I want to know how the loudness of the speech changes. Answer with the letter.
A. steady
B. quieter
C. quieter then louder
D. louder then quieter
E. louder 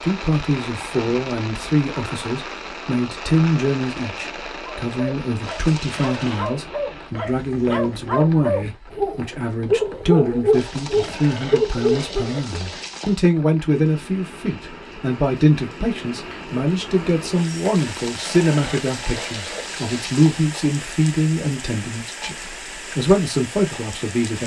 A.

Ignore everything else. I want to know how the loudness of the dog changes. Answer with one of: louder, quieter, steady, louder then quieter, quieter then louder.
louder.